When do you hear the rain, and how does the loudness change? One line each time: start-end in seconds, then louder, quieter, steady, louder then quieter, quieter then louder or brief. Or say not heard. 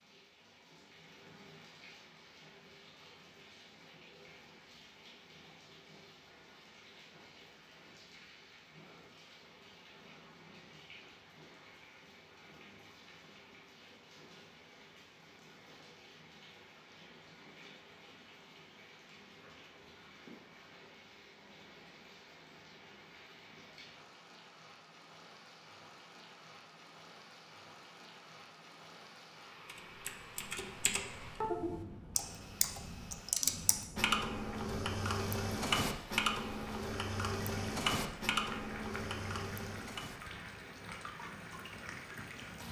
0.0-42.6 louder.